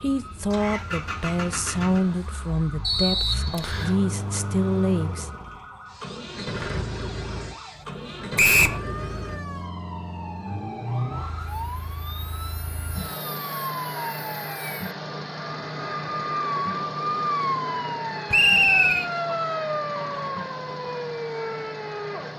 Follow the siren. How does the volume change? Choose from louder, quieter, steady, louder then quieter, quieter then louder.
louder.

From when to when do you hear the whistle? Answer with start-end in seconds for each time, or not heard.
2.9-4.0, 8.3-8.8, 18.3-19.1.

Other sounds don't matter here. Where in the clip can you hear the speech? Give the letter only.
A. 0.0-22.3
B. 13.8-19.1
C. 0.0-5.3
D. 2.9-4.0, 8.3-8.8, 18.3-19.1
C.